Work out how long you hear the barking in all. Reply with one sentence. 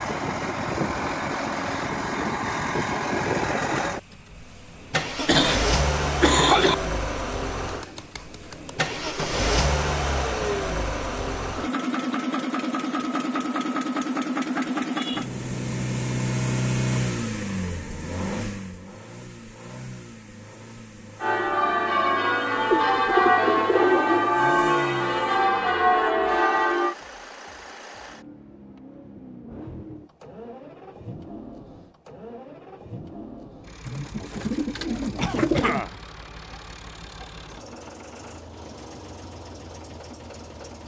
You can't hear the barking here.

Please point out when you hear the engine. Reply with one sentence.
You can hear the engine from 0.0 to 40.8 s.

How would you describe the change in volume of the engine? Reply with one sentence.
The loudness of the engine goes down.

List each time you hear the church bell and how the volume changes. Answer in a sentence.
The church bell can be heard from 21.2 to 26.9 s, at a steady volume.